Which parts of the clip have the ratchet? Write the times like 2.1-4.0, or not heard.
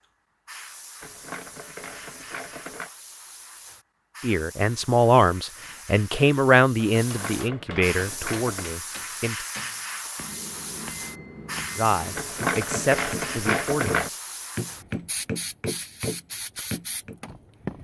1.0-2.9, 7.0-8.7, 12.2-14.1.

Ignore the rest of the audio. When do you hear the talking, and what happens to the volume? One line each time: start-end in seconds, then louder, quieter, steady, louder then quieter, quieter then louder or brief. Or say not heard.
4.2-9.4 quieter
11.8-14.2 brief.